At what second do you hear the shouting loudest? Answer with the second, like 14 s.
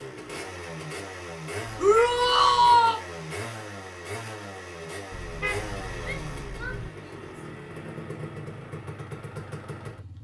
3 s.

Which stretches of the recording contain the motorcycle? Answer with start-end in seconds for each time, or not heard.
0.0-10.1.